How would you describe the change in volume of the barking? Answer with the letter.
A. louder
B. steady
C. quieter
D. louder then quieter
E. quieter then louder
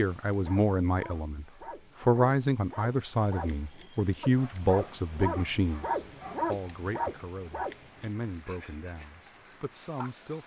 D.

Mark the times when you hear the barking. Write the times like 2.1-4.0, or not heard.
0.2-10.2.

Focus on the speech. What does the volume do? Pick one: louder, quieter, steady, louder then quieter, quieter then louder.
quieter.